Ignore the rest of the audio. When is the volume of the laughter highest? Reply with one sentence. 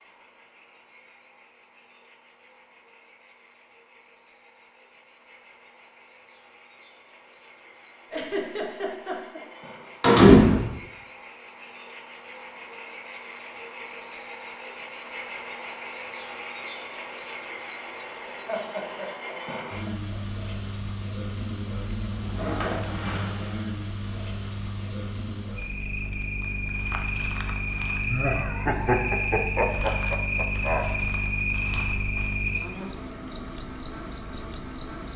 The loudest moment of the laughter is at 29 seconds.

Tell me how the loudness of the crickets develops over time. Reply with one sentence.
The loudness of the crickets goes up.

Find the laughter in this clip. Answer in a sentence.
You can hear the laughter from 8.1 to 9.4 s, from 18.4 to 20.2 s and from 28.1 to 30.9 s.